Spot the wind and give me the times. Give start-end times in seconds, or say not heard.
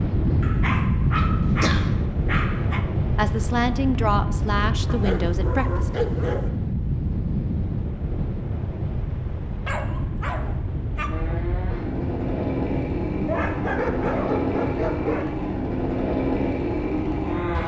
0.0-17.6.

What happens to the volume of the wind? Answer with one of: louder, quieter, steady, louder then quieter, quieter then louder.
quieter.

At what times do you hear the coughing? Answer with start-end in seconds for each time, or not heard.
1.1-1.9.